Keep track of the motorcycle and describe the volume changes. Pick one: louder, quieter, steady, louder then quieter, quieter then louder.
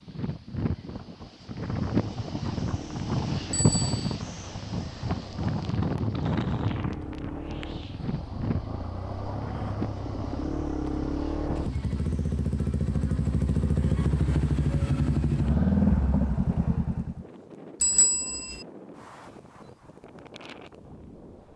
louder.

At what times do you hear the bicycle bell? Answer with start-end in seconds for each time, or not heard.
3.5-4.0, 17.8-18.6.